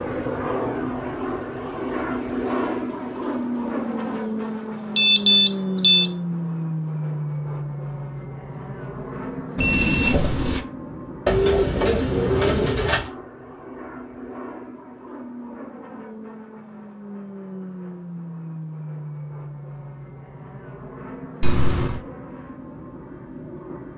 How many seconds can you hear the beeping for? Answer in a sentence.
The beeping can be heard for 3 seconds in total.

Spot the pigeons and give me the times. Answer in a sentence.
The pigeons can be heard from 11.2 to 13.1 s.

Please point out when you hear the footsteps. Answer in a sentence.
You can't hear the footsteps here.